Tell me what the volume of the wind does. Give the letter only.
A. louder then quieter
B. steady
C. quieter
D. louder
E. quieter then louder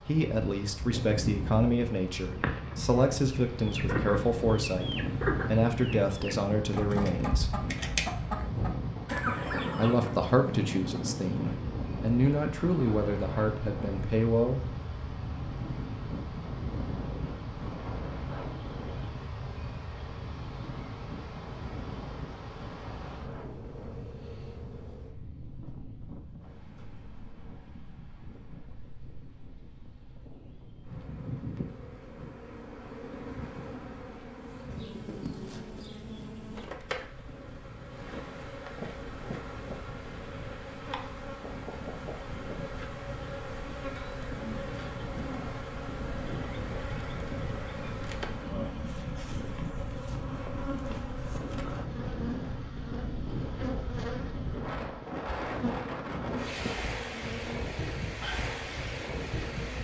E.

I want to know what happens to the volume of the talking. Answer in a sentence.
The volume of the talking stays about the same.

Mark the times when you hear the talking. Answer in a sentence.
You can hear the talking from 0.1 to 7.5 s and from 9.8 to 14.7 s.